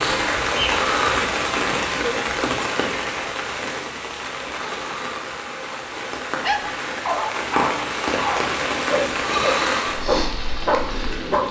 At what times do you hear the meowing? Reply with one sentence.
You can't hear the meowing here.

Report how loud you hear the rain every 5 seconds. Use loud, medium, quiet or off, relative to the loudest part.
loud, loud, medium.